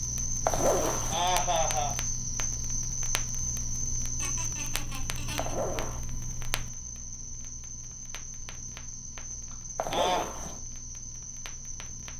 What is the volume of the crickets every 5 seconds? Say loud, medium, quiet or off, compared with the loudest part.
loud, medium, medium.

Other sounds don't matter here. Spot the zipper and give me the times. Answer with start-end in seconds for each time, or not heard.
0.5-1.2, 5.3-6.0, 9.8-10.6.